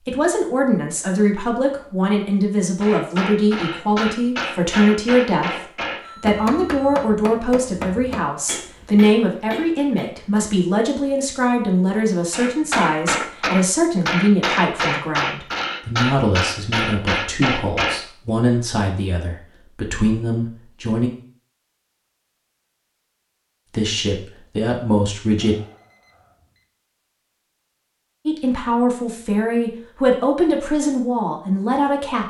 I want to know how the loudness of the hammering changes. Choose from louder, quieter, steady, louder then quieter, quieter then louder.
quieter then louder.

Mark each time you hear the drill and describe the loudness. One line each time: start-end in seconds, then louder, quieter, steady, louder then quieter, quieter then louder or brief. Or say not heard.
not heard.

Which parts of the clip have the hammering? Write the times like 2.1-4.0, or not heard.
2.8-10.1, 12.3-18.0.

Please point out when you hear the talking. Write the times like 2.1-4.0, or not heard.
0.0-21.1, 23.7-25.6, 28.2-32.2.